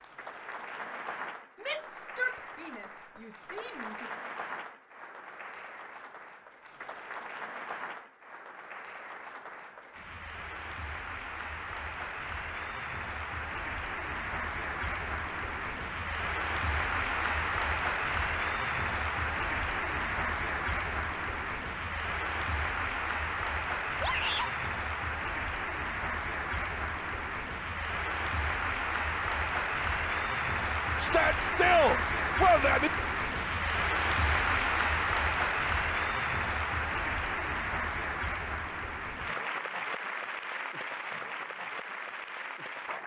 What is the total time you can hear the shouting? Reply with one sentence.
The shouting can be heard for 5 seconds in total.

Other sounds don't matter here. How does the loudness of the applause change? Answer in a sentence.
The loudness of the applause goes up.